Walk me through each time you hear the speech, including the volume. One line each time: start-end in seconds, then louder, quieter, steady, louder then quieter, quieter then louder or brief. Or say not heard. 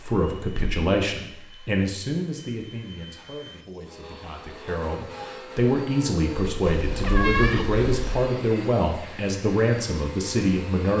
0.0-10.9 quieter then louder.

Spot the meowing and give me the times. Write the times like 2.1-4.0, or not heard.
6.7-8.2.